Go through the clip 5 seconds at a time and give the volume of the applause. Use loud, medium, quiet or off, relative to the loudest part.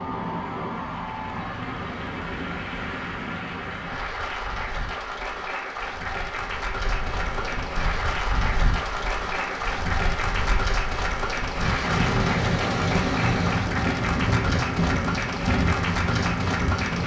medium, loud, loud, loud.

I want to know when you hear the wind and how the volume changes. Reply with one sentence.
You can hear the wind from 0.0 to 17.0 s, getting quieter then louder.